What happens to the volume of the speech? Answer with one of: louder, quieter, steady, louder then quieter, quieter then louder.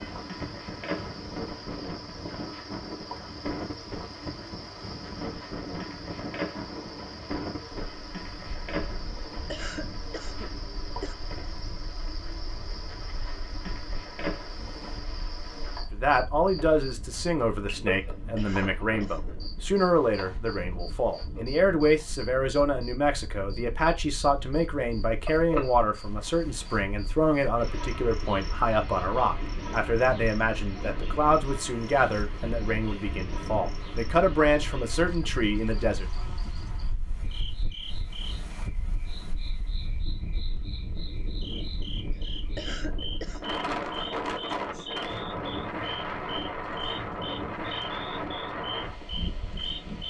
steady.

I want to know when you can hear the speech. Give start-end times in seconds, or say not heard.
15.9-36.0.